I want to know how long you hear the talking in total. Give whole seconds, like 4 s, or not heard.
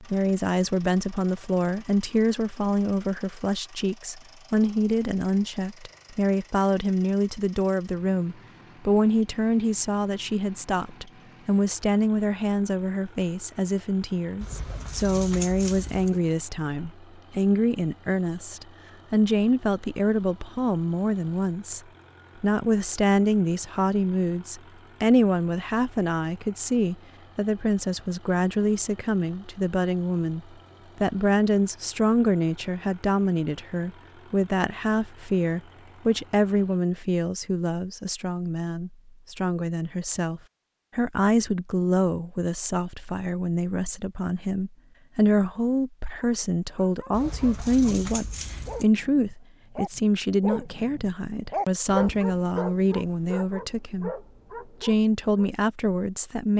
55 s.